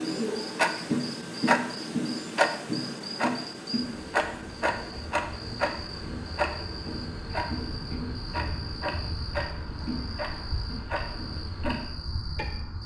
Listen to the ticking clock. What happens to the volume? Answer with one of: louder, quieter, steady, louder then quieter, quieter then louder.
quieter.